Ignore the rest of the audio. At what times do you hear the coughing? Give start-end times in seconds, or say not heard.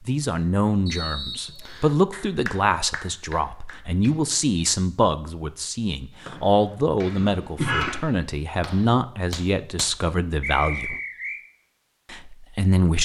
7.1-8.0.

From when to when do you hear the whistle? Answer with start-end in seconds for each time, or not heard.
0.8-1.9, 6.2-7.0, 10.4-11.4.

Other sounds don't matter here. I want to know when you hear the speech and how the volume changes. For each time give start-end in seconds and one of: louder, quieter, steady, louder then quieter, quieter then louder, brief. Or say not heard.
0.1-10.9 steady
12.1-13.0 brief.